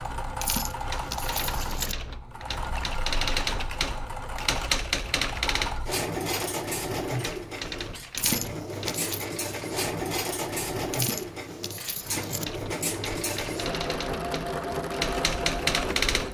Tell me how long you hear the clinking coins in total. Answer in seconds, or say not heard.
4 s.